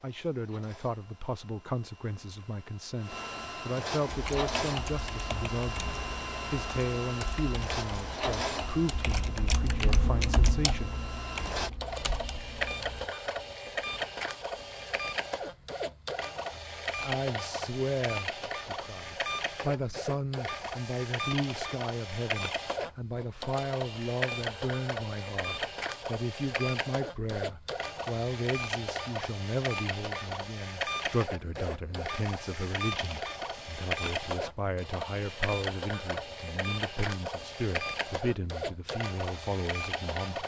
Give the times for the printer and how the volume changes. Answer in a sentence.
The printer can be heard from 0.0 to 40.4 s, at a steady volume.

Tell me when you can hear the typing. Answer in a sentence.
The typing can be heard from 4.0 to 13.1 s.